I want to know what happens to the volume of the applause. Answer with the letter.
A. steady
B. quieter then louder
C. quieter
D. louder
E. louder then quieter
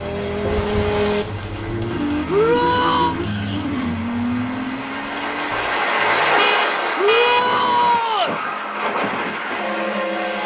E.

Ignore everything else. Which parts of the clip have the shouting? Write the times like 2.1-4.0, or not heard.
2.2-3.1, 7.0-8.3.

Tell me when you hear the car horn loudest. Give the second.
7 s.